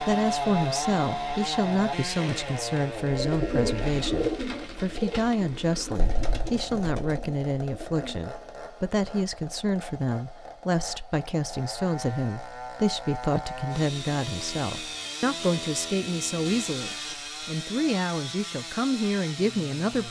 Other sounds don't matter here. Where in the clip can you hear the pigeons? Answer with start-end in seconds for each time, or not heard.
3.1-8.3.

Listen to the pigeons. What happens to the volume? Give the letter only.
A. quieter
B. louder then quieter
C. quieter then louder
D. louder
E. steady
A.